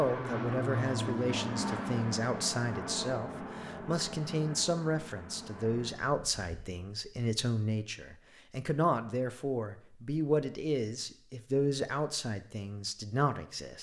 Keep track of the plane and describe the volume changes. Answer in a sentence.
The volume of the plane goes down.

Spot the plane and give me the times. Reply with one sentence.
The plane can be heard from 0.0 to 6.7 s.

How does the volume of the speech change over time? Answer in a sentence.
The volume of the speech stays about the same.